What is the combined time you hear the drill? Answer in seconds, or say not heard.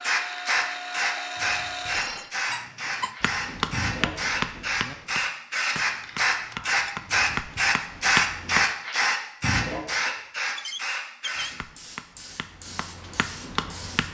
2 s.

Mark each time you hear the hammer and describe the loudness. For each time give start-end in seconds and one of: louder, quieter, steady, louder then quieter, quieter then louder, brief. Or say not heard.
3.2-8.7 quieter then louder
11.3-14.0 brief.